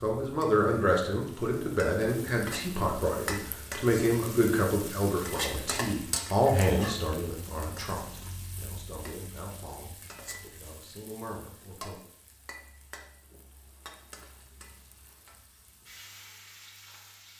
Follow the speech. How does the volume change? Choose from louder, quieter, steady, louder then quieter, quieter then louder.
quieter.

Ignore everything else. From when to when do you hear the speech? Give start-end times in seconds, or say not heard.
0.0-12.0.